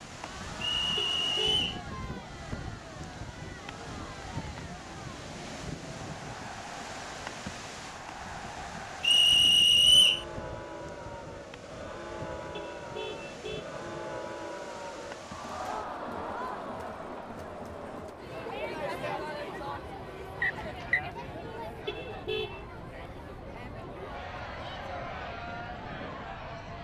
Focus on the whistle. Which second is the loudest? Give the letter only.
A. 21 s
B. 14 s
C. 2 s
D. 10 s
D.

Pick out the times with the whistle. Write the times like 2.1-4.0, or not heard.
0.6-1.8, 9.0-10.2, 20.4-21.0.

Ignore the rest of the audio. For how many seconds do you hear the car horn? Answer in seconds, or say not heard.
3 s.